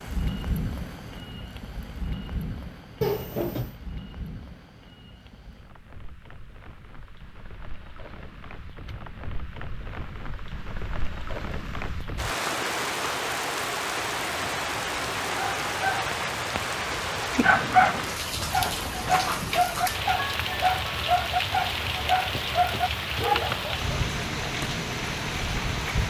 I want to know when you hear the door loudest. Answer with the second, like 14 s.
3 s.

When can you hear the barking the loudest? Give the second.
18 s.